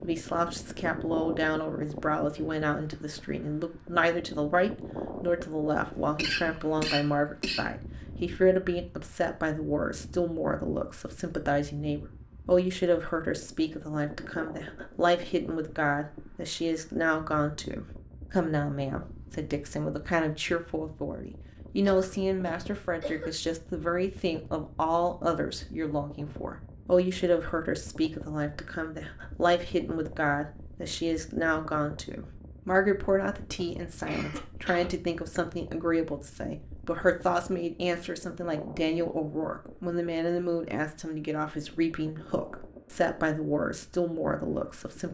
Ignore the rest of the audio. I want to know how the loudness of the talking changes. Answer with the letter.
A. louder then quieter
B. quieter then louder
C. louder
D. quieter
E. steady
E.